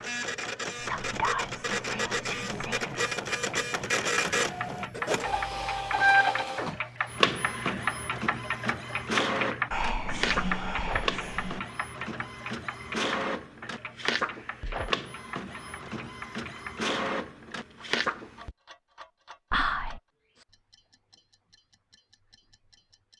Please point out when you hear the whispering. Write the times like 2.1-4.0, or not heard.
0.8-2.9, 9.7-11.6, 19.5-20.0.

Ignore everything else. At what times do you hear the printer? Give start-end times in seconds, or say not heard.
0.0-18.6.